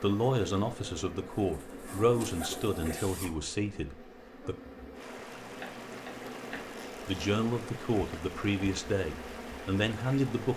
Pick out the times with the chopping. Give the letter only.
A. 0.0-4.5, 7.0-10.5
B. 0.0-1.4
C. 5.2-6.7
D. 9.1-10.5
C.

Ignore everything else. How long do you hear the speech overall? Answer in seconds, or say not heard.
8 s.